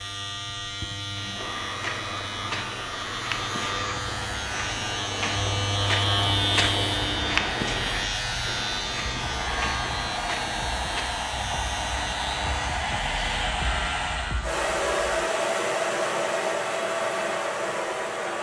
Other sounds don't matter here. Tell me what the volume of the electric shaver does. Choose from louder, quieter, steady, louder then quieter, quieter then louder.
louder then quieter.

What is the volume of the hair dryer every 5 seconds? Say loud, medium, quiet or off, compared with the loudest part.
medium, medium, loud, loud.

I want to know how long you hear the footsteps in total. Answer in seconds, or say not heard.
10 s.